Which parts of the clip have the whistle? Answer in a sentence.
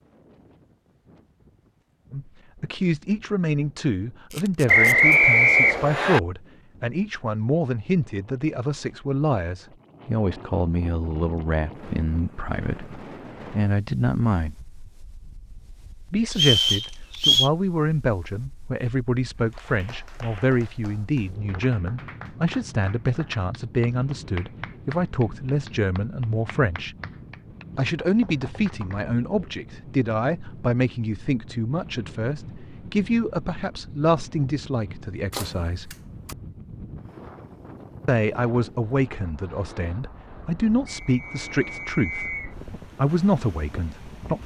The whistle can be heard from 4.7 to 6.2 s, from 16.3 to 17.5 s and from 40.9 to 42.5 s.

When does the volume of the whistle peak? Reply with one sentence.
The loudest moment of the whistle is at 5 seconds.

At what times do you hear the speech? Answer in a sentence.
The speech can be heard from 2.1 to 14.6 s, from 16.1 to 26.9 s, from 27.8 to 36.0 s and from 38.0 to 44.4 s.